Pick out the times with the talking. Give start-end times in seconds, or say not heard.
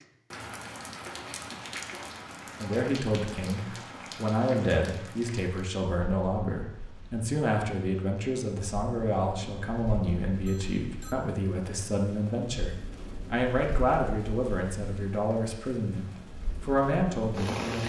2.6-17.8.